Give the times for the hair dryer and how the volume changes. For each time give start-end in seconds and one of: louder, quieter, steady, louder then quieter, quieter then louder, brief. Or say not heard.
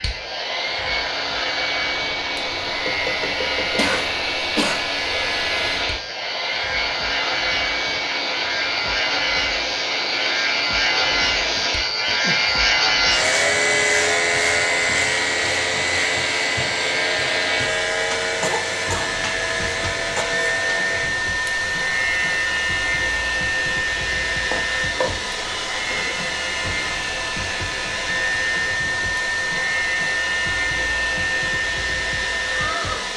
0.0-33.1 steady.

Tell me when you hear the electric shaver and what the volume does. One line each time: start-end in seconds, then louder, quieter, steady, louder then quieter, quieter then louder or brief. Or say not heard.
0.0-33.1 louder then quieter.